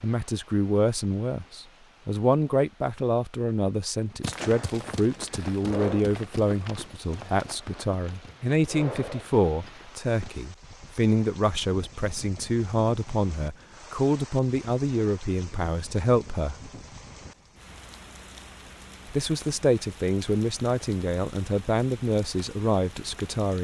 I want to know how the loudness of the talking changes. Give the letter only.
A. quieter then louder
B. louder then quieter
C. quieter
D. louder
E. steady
E.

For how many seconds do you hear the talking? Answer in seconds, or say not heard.
21 s.